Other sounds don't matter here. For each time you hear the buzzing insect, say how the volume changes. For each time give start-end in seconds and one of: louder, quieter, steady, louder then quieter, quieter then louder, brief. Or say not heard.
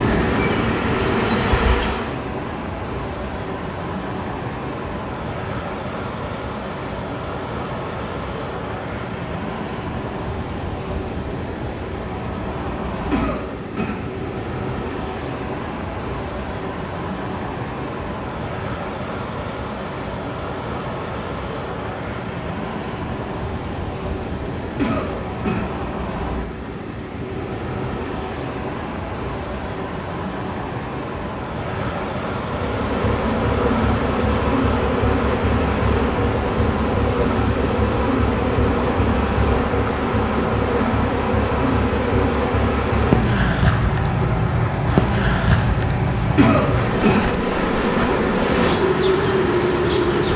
0.0-2.2 brief
32.4-50.3 steady.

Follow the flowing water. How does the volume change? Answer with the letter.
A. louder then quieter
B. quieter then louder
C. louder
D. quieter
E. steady
E.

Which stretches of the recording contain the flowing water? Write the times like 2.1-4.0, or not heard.
0.0-50.3.